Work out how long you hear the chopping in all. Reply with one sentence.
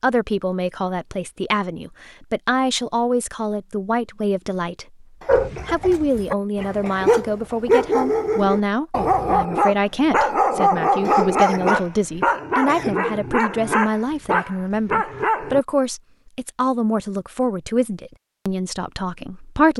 You can't hear the chopping here.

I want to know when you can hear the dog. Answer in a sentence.
You can hear the dog from 5.2 to 15.7 s.